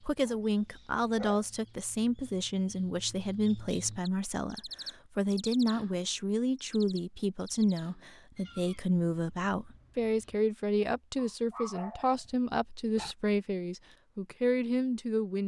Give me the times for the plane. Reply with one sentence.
The plane can't be heard in this clip.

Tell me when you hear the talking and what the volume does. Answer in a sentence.
You can hear the talking from 0.0 to 15.4 s, at a steady volume.